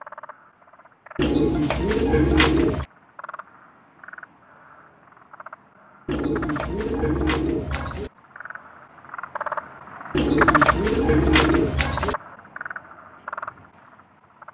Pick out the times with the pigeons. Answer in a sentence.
The pigeons can be heard from 1.1 to 2.9 s, from 6.0 to 8.1 s and from 10.1 to 12.2 s.